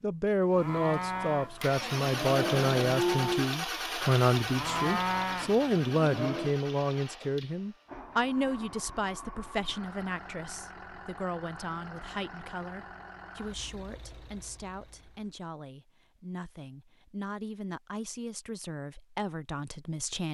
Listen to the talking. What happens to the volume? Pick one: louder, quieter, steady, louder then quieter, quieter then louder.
quieter.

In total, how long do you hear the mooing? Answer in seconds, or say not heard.
6 s.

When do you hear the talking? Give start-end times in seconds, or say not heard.
0.0-20.2.